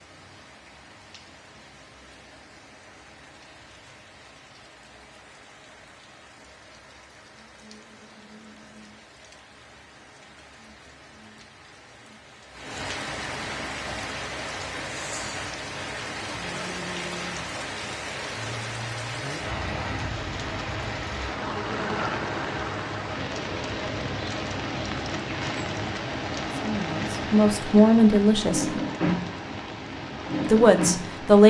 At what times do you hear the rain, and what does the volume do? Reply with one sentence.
You can hear the rain from 0.0 to 31.4 s, getting louder.